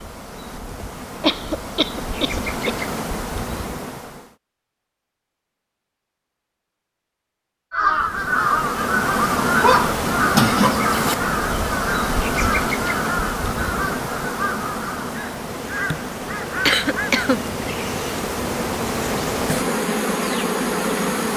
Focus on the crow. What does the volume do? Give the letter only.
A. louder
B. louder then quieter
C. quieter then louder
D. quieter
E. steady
D.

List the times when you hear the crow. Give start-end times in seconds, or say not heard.
7.7-17.1.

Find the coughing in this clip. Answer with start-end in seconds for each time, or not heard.
1.2-2.9, 9.6-10.8, 16.6-17.9.